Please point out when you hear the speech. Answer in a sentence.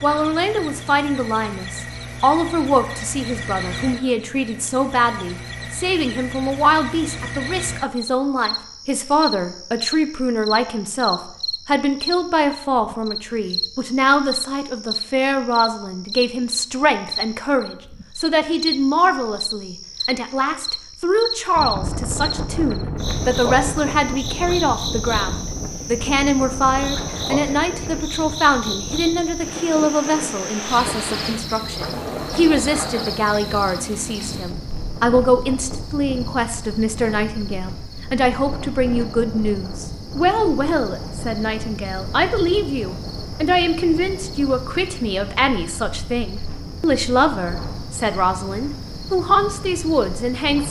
You can hear the speech from 0.0 to 50.6 s.